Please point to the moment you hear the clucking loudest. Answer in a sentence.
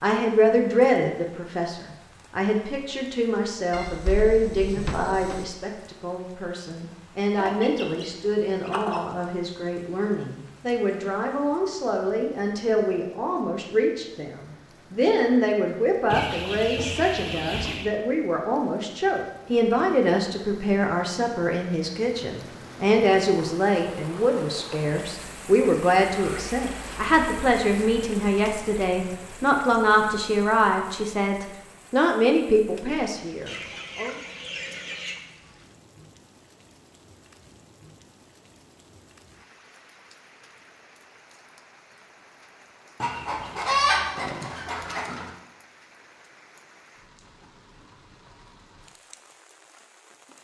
The loudest moment of the clucking is at 44 seconds.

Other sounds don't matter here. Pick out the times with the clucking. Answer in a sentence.
The clucking can be heard from 7.3 to 9.0 s, from 16.1 to 17.9 s, from 33.5 to 35.2 s and from 43.0 to 45.3 s.